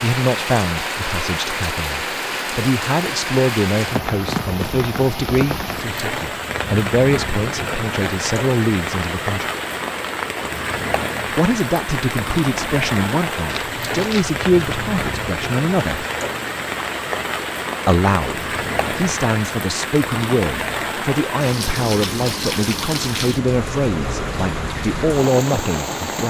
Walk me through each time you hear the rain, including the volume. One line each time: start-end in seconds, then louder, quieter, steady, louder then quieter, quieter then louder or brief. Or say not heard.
0.0-26.2 steady.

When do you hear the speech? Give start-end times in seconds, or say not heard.
0.0-9.5, 11.3-16.1, 17.9-26.2.